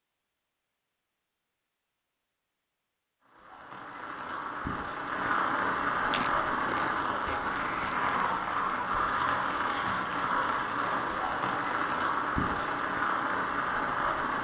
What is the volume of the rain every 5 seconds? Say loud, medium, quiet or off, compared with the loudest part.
medium, loud, loud.